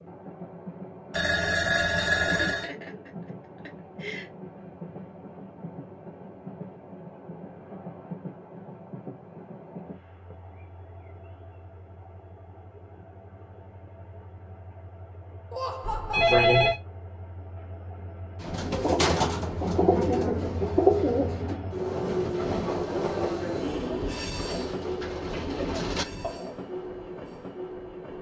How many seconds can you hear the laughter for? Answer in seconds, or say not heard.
3 s.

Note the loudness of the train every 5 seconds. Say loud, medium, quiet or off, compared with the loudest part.
medium, medium, quiet, quiet, loud, medium.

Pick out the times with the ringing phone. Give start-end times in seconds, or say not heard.
1.1-2.7, 15.8-16.8.